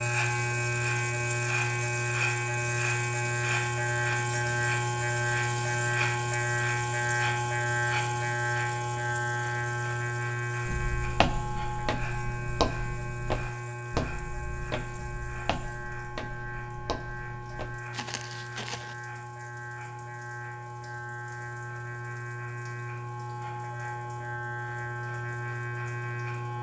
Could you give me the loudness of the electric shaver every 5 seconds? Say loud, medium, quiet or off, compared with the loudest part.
loud, loud, medium, medium, medium, medium.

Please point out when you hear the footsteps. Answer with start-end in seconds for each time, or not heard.
10.7-18.9.